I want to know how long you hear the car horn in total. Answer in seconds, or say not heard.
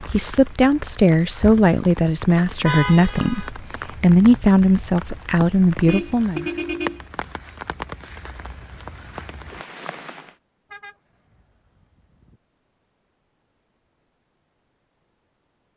4 s.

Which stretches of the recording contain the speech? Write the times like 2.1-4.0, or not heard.
0.0-6.5.